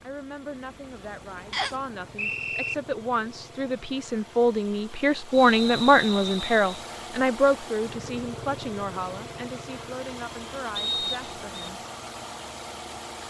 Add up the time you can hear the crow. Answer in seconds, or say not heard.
not heard.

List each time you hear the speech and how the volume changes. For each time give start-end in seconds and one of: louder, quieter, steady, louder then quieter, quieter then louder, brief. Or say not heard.
0.0-11.8 louder then quieter.